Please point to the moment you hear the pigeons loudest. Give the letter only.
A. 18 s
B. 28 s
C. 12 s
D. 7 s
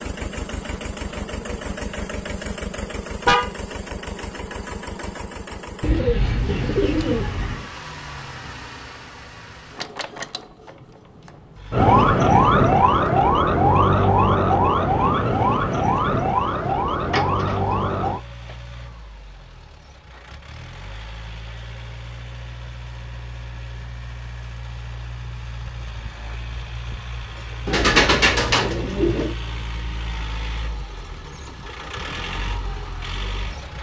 B.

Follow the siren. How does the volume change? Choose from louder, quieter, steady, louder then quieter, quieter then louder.
quieter.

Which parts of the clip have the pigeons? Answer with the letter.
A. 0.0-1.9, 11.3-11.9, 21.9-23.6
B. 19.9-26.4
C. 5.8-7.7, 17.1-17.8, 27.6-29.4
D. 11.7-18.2
C.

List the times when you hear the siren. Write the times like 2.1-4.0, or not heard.
11.7-18.2.